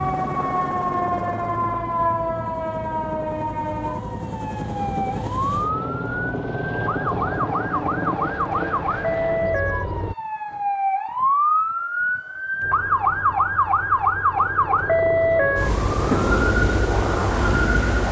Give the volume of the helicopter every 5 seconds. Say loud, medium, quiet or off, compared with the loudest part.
medium, loud, medium, loud.